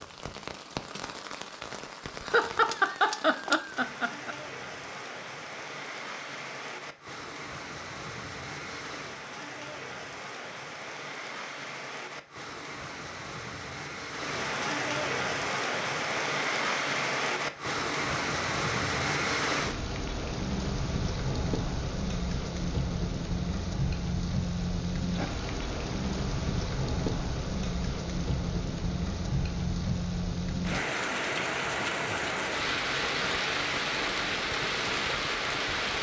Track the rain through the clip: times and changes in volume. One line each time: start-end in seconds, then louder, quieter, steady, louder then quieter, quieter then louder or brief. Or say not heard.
0.0-35.9 louder.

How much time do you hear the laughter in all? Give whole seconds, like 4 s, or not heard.
2 s.